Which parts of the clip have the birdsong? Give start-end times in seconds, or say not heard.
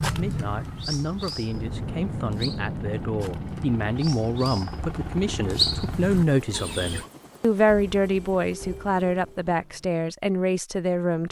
0.0-7.0.